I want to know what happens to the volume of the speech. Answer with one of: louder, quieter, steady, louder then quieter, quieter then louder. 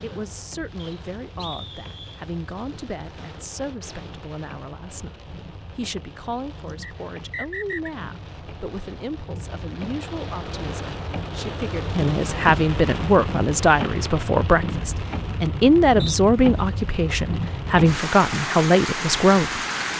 louder.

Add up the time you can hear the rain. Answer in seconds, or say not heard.
20 s.